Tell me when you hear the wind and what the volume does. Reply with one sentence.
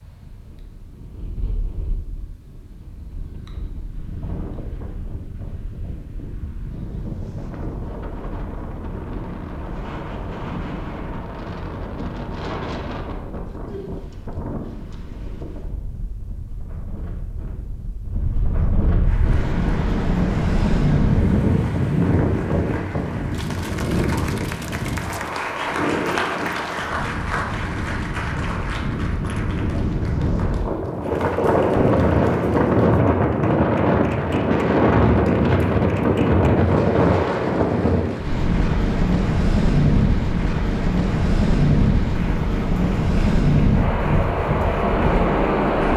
You can hear the wind from 0.0 to 45.9 s, getting louder.